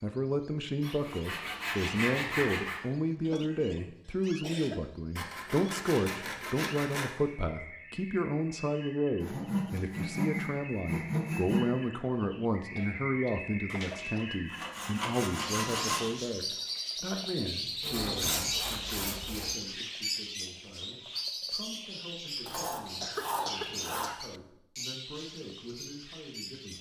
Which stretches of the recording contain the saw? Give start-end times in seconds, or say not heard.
0.8-2.8, 5.2-7.2, 9.2-11.7, 13.7-16.1, 17.8-19.6, 22.4-24.1.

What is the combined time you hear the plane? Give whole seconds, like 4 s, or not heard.
not heard.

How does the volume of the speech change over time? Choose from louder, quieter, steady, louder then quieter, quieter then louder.
quieter.